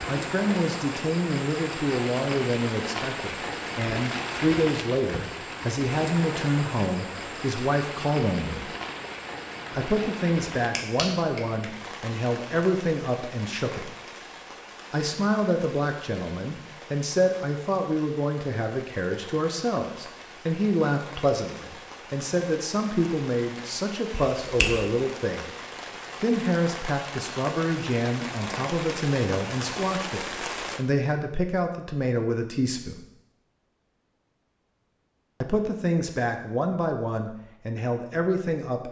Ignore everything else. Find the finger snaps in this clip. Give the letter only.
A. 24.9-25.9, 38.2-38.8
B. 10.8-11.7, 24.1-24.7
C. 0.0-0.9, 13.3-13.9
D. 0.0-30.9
B.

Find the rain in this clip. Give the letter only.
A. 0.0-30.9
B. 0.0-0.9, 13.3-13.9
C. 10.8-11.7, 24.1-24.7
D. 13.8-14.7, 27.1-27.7
A.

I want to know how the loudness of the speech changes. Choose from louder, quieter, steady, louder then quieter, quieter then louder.
steady.